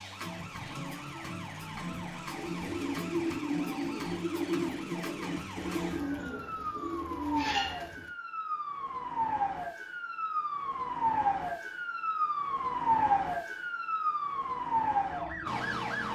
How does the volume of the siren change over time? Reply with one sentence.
The loudness of the siren goes up.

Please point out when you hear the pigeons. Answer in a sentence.
The pigeons can be heard from 2.3 to 8.1 s.